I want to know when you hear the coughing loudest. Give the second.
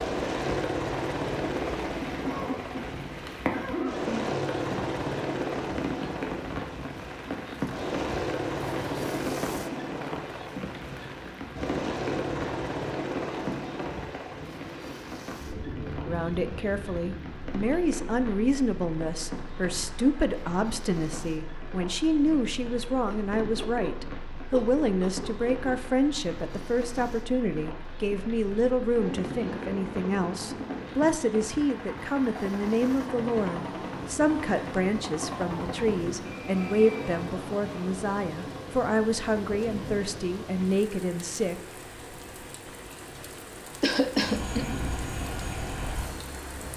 44 s.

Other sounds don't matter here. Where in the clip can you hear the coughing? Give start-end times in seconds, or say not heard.
2.2-4.4, 23.1-25.8, 43.8-44.8.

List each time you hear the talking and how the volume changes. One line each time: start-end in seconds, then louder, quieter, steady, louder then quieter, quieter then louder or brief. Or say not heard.
16.1-41.6 steady.